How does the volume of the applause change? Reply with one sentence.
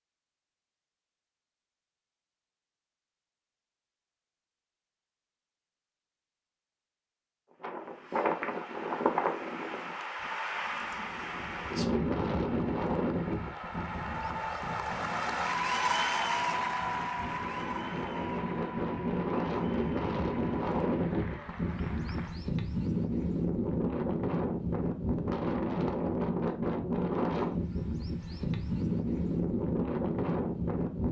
The loudness of the applause goes up, then down.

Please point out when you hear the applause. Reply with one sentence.
You can hear the applause from 8.2 to 22.4 s.